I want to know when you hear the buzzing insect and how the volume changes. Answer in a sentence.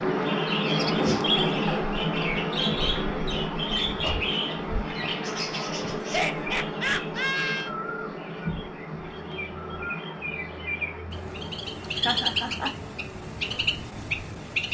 The buzzing insect can be heard from 0.0 to 14.6 s, getting quieter.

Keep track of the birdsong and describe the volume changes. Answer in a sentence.
The loudness of the birdsong goes down, then up.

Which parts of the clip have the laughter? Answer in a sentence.
You can hear the laughter from 0.9 to 1.9 s, from 6.0 to 7.7 s and from 11.8 to 12.8 s.